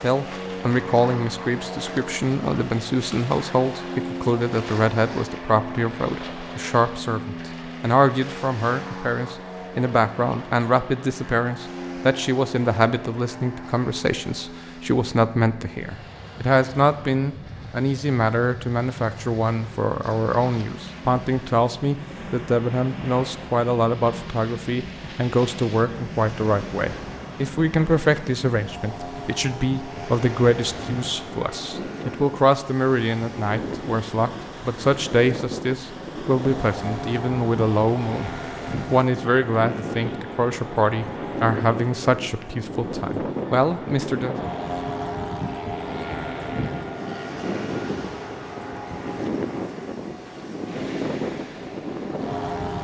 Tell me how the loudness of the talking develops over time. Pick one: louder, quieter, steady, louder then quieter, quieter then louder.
steady.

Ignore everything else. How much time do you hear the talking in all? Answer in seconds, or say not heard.
44 s.